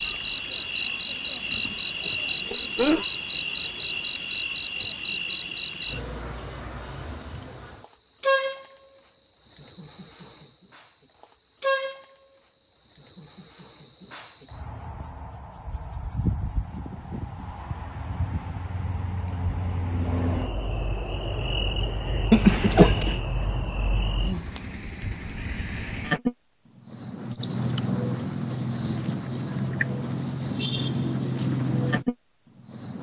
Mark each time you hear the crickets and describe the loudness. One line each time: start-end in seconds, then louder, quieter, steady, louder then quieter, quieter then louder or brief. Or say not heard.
0.0-32.9 quieter then louder.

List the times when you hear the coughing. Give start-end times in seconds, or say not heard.
1.6-3.0, 22.3-23.2.